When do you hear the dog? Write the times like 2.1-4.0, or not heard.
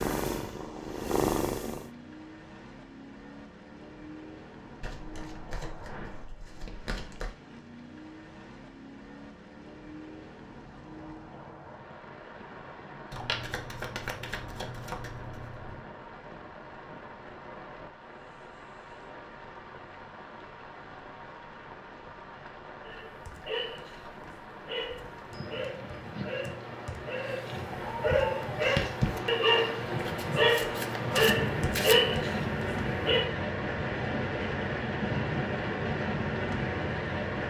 22.8-33.3.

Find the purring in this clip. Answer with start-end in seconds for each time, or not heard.
0.0-1.9.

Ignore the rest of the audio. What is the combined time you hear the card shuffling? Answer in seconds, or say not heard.
7 s.